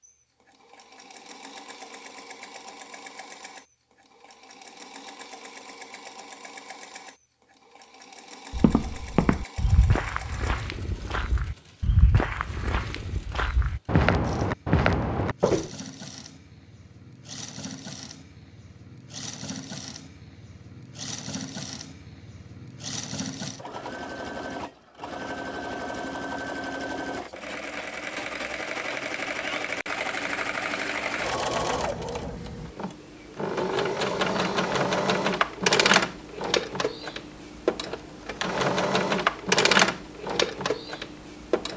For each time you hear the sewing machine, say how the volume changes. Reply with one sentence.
You can hear the sewing machine from 0.0 to 41.7 s, getting louder.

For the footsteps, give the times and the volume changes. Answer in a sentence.
The footsteps can be heard from 8.5 to 15.7 s, getting quieter then louder.